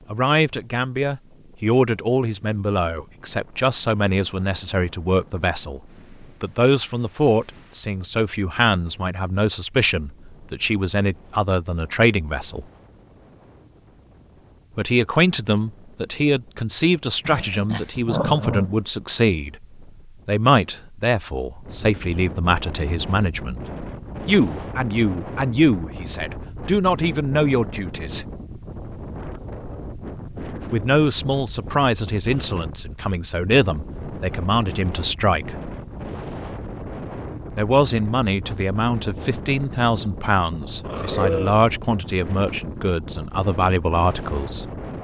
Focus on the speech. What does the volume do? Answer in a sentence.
The volume of the speech stays about the same.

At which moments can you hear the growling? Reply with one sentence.
You can hear the growling from 17.2 to 18.8 s and from 40.8 to 41.6 s.